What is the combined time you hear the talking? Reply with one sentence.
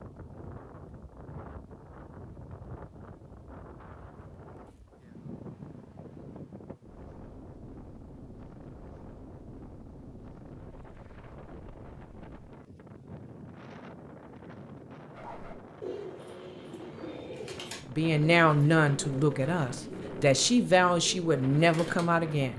You can hear the talking for 5 seconds altogether.